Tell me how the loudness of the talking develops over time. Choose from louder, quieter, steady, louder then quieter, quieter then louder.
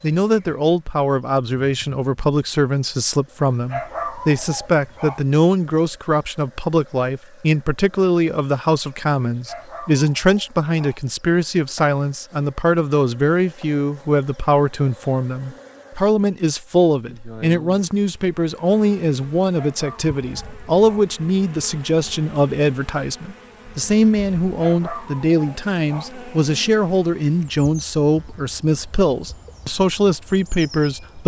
steady.